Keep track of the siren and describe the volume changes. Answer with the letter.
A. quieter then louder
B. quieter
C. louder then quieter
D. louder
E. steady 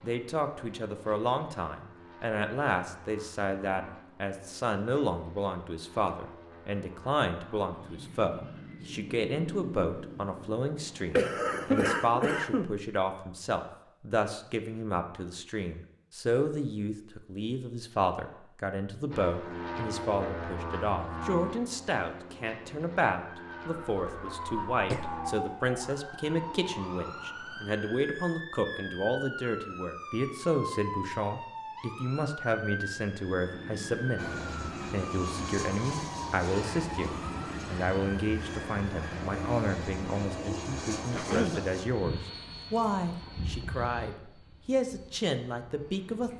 E.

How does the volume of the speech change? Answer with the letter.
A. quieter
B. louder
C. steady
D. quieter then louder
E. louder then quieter
C.